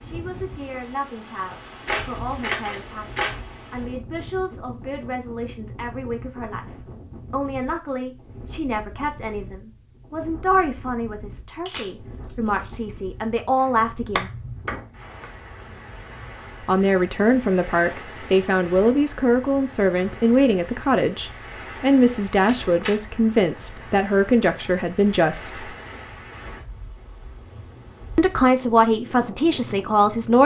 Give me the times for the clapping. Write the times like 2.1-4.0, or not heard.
14.2-15.3.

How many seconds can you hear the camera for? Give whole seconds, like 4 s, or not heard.
3 s.